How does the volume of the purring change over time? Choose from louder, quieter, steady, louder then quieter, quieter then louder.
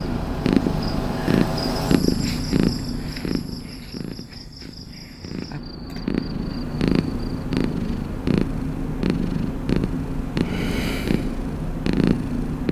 quieter then louder.